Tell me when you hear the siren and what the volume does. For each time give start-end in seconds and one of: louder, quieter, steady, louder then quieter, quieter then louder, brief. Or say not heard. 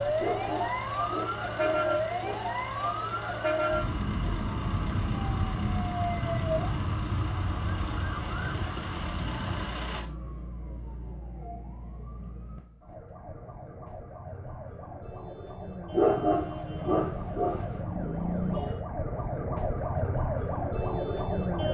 0.0-21.6 quieter then louder.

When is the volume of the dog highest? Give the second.
16 s.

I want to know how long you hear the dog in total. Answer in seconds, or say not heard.
4 s.